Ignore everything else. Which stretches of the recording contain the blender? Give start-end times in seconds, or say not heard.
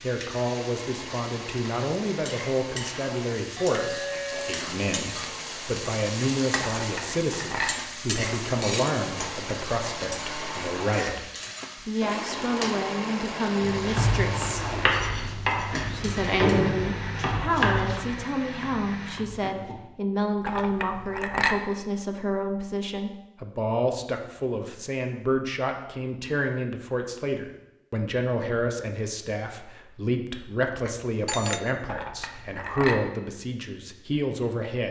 0.0-19.4.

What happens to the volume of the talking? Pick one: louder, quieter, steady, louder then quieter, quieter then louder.
steady.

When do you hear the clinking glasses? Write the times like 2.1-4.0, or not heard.
6.8-7.8, 20.4-21.6, 31.9-33.0.